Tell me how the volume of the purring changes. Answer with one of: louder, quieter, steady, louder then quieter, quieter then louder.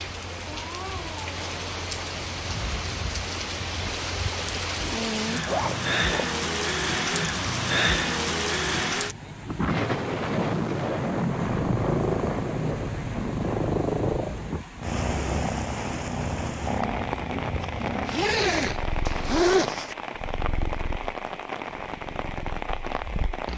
quieter.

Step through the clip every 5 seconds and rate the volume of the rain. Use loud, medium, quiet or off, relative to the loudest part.
medium, loud, loud, medium, medium.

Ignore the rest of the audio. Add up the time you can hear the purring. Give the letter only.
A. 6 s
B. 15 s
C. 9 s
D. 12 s
D.